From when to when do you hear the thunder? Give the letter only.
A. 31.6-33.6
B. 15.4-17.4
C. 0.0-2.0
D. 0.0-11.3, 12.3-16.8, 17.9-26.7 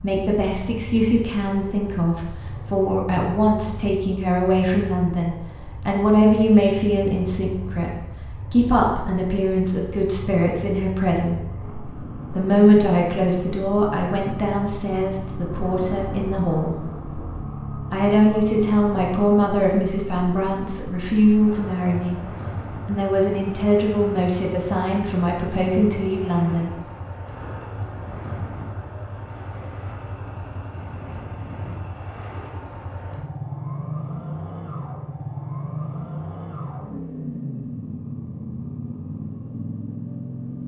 B.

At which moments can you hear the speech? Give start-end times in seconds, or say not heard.
0.0-11.3, 12.3-16.8, 17.9-26.7.